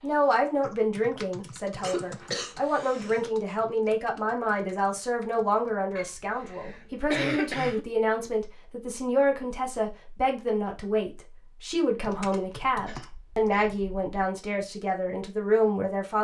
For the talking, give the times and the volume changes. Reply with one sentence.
The talking can be heard from 0.0 to 16.1 s, at a steady volume.